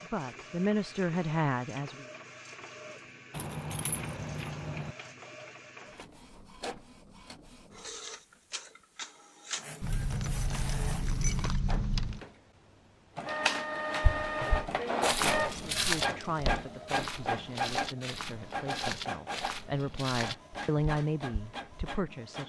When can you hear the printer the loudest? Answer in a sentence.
The loudest moment of the printer is at 15 seconds.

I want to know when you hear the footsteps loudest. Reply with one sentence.
The loudest moment of the footsteps is at 16 seconds.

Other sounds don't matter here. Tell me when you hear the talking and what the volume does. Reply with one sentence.
You can hear the talking briefly from 0.0 to 1.9 s; and from 15.6 to 22.4 s, getting quieter then louder.